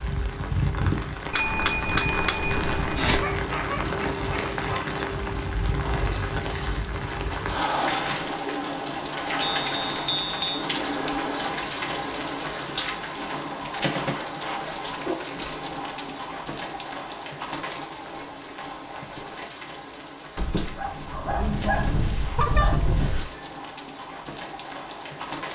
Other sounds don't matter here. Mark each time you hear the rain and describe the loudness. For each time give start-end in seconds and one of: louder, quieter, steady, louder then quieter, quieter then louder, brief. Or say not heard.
0.0-25.4 quieter.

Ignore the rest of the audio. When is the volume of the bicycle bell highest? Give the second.
2 s.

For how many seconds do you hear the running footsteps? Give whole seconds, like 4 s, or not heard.
not heard.